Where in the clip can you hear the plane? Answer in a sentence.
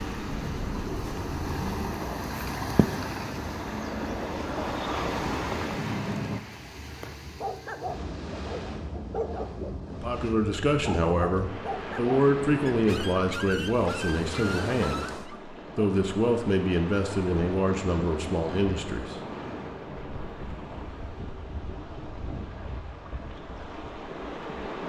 The plane can be heard from 0.0 to 6.4 s.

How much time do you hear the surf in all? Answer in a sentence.
You can hear the surf for 25 seconds altogether.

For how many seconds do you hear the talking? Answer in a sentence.
The talking can be heard for 9 seconds in total.